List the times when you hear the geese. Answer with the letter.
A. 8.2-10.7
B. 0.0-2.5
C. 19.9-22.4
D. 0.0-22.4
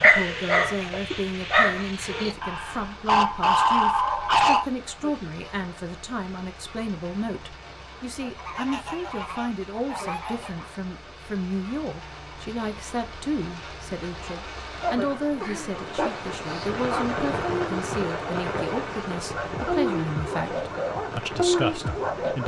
A.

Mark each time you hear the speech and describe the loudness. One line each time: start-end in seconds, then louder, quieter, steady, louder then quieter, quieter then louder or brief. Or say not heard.
0.0-22.4 steady.